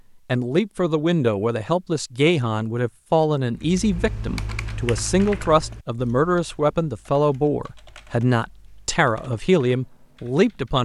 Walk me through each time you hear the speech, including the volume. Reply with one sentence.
You can hear the speech from 0.2 to 10.7 s, at a steady volume.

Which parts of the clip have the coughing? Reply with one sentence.
The coughing can't be heard in this clip.